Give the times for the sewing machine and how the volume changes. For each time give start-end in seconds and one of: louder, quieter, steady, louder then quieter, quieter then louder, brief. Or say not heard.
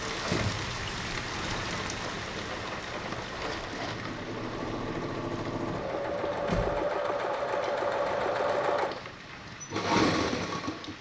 0.0-10.9 louder.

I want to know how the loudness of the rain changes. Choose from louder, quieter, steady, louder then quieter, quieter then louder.
quieter.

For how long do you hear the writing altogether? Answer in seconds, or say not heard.
not heard.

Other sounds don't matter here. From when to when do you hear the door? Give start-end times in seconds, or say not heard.
5.7-6.8.